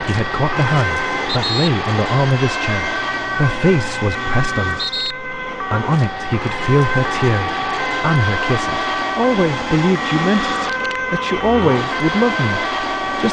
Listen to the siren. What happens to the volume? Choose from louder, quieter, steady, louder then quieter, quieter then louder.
steady.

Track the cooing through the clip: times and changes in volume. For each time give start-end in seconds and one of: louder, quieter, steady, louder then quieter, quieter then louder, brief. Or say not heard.
not heard.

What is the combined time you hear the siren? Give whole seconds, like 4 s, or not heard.
13 s.